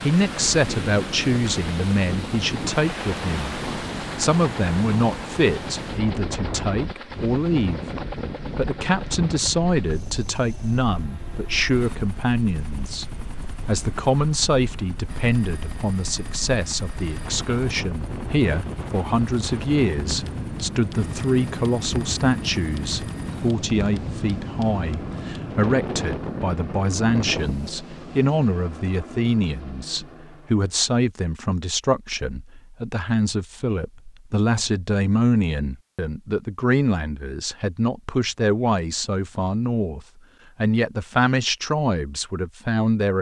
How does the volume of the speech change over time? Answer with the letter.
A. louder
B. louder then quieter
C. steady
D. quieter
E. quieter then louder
C.